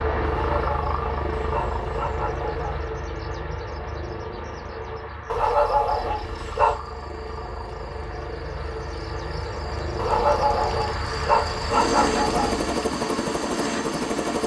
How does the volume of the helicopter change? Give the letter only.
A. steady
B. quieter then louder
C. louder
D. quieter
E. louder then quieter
B.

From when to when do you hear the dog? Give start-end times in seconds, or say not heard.
0.2-2.9, 5.2-6.8, 9.9-12.7.